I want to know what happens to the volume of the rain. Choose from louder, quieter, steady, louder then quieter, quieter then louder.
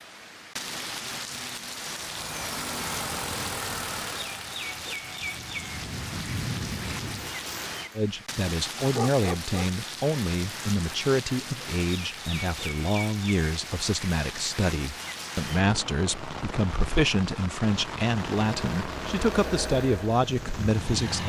steady.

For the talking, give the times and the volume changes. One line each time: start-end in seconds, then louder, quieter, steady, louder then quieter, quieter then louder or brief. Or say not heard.
8.0-21.2 steady.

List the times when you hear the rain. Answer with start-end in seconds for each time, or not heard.
0.0-21.2.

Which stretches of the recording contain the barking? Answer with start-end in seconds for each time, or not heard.
8.8-9.7.